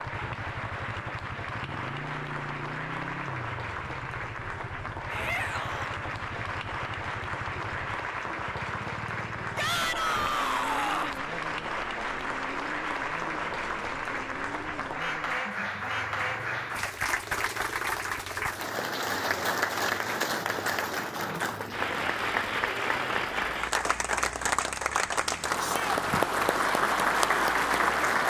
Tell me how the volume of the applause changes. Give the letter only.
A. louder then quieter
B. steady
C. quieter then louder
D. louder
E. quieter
D.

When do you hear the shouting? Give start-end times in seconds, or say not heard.
5.1-5.9, 9.6-11.2, 25.6-26.0.